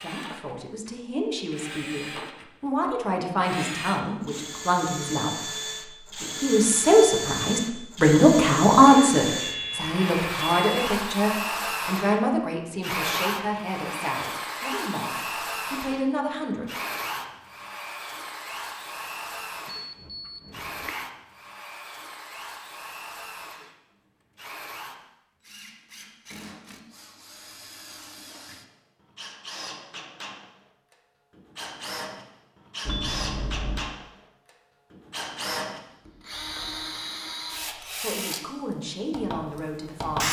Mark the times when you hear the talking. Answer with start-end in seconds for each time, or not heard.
0.0-5.7, 6.4-16.7, 38.0-40.2.